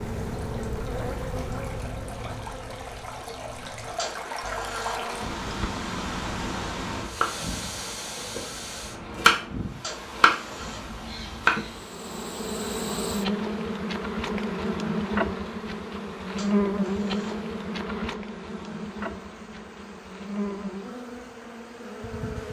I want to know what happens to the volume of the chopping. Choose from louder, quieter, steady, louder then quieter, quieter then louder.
louder then quieter.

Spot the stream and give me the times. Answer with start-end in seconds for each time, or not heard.
0.0-22.4.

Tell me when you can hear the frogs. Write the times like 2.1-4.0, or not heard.
not heard.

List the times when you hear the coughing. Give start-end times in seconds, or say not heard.
not heard.